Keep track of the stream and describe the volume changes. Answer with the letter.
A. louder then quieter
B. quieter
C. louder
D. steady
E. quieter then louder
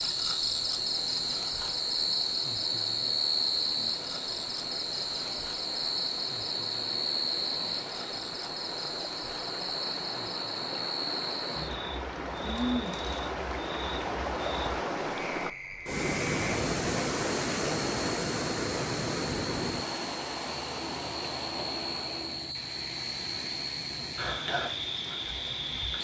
A.